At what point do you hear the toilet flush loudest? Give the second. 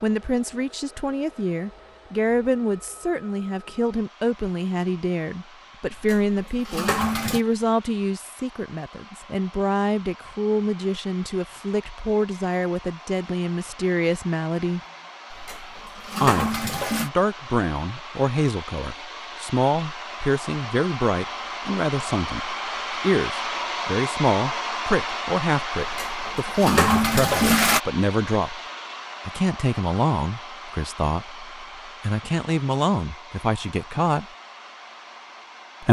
27 s.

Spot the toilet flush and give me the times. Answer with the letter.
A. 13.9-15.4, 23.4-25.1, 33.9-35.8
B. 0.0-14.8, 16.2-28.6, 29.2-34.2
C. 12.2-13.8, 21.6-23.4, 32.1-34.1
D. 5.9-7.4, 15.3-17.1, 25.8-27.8
D.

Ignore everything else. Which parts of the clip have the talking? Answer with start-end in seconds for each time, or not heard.
0.0-14.8, 16.2-28.6, 29.2-34.2.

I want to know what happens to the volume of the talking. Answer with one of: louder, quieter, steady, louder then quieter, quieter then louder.
steady.